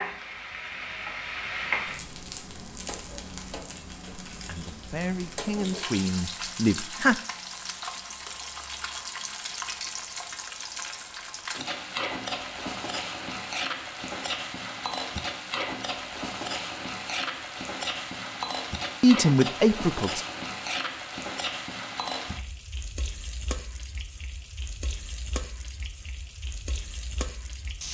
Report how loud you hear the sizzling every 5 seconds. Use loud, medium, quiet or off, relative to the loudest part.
loud, loud, loud, loud, loud, medium.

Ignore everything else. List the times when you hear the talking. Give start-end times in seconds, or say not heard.
4.5-7.2, 19.0-20.2.